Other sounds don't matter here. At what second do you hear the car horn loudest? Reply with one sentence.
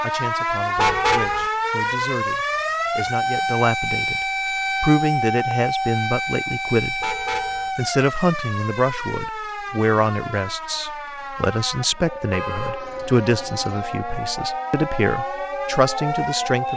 The loudest moment of the car horn is at 1 second.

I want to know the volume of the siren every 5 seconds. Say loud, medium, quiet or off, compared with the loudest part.
loud, loud, medium, loud.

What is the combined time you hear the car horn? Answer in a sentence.
You can hear the car horn for 3 seconds altogether.